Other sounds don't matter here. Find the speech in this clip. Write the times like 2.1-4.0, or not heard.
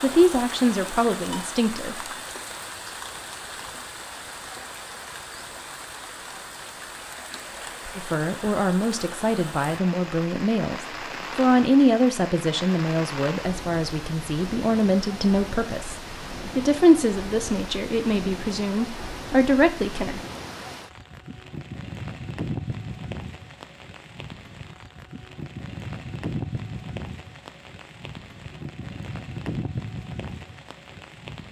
0.0-1.9, 8.0-15.9, 16.6-20.1.